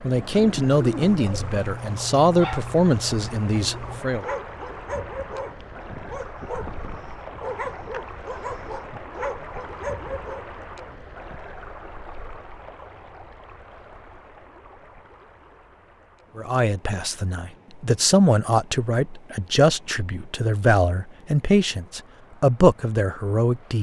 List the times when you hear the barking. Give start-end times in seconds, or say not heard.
0.1-10.6.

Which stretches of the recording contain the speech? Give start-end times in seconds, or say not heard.
0.0-4.2, 16.4-23.7.